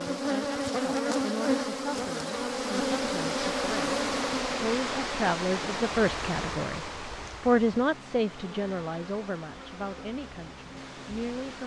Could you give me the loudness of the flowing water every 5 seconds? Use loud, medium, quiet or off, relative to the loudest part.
loud, loud, medium.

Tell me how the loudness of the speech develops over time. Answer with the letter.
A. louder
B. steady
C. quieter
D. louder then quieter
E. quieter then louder
D.